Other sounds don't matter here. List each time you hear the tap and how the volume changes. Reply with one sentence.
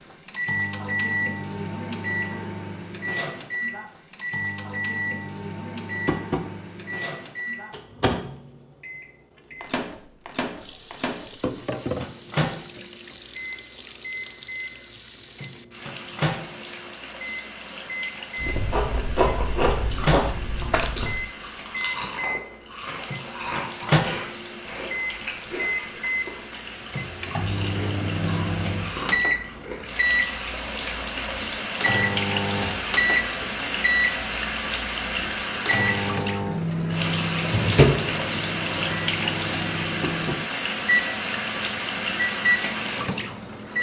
You can hear the tap from 10.6 to 43.7 s, getting louder.